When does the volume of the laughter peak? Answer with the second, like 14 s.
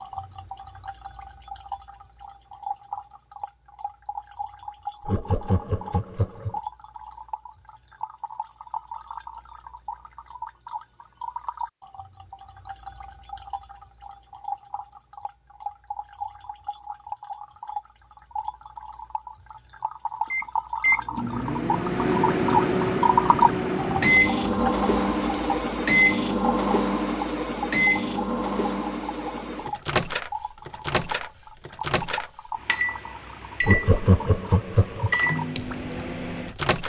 34 s.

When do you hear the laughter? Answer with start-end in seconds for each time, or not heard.
5.0-6.5, 33.6-35.1.